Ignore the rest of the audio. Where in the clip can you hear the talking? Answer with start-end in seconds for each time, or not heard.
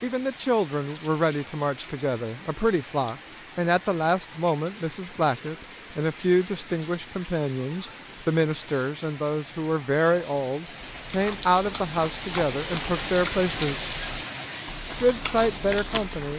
0.0-13.9, 15.0-16.3.